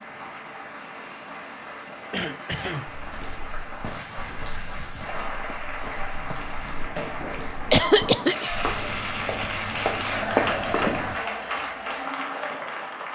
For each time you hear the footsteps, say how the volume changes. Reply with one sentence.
You can hear the footsteps from 2.9 to 11.2 s, getting louder.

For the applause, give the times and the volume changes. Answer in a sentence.
The applause can be heard from 0.0 to 13.1 s, getting louder.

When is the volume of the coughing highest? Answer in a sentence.
The loudest moment of the coughing is at 8 seconds.